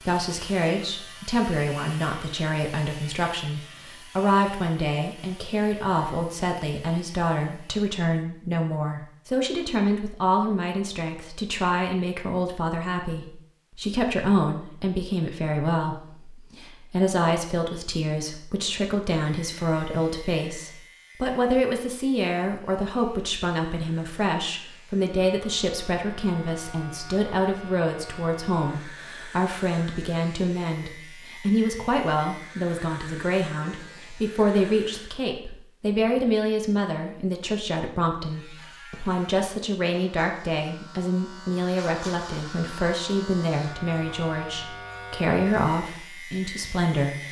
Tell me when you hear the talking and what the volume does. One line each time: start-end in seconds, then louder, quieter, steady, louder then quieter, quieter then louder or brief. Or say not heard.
0.0-47.2 steady.